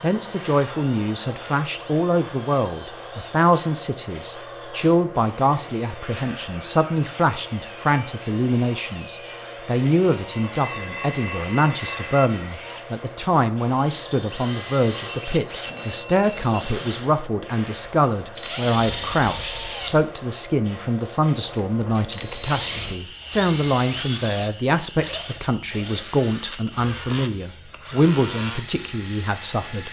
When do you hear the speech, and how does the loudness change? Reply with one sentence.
The speech can be heard from 0.0 to 29.8 s, at a steady volume.